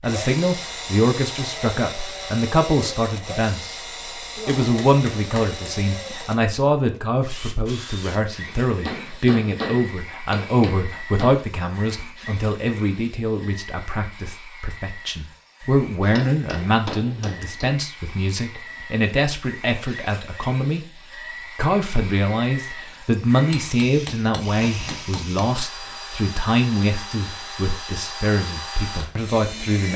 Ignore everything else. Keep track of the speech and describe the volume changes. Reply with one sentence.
The loudness of the speech stays about the same.